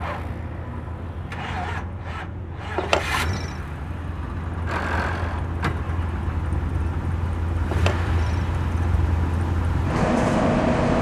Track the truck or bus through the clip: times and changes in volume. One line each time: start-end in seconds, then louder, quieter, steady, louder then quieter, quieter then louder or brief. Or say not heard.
0.0-10.9 louder.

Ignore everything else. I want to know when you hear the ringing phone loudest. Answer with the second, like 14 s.
3 s.